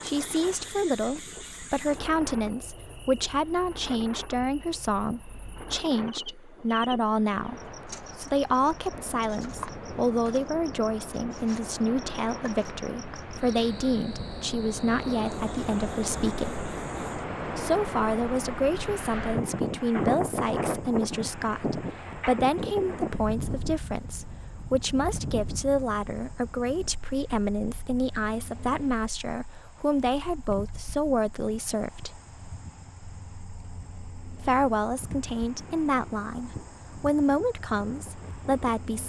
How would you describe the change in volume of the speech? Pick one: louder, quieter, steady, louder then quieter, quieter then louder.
steady.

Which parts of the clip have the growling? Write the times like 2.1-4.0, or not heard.
not heard.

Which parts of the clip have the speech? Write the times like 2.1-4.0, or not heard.
0.0-16.6, 17.6-32.2, 34.4-39.0.